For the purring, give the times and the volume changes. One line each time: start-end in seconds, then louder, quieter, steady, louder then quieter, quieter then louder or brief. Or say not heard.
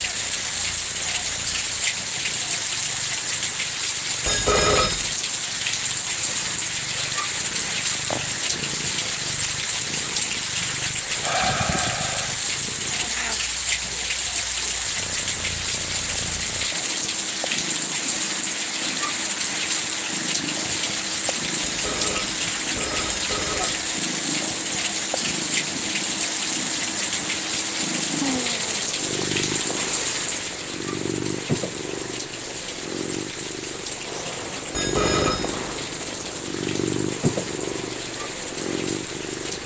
0.0-39.6 louder.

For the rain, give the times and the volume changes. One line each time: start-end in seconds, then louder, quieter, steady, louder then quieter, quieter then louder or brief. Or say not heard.
0.0-39.6 quieter.